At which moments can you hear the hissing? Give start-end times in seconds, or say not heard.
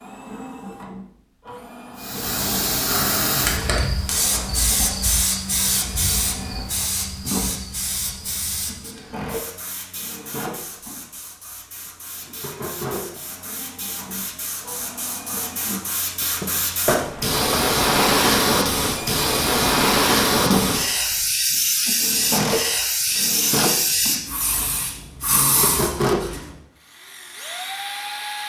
1.9-26.6.